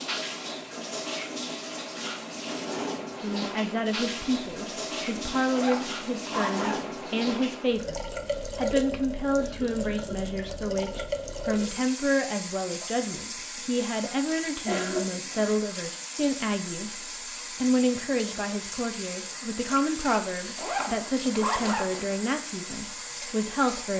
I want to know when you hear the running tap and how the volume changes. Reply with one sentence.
You can hear the running tap from 0.0 to 23.9 s, at a steady volume.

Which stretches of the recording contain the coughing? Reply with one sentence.
The coughing can be heard from 9.3 to 10.2 s and from 14.7 to 15.6 s.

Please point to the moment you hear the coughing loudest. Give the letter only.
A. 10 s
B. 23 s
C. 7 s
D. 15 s
D.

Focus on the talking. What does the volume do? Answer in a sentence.
The loudness of the talking stays about the same.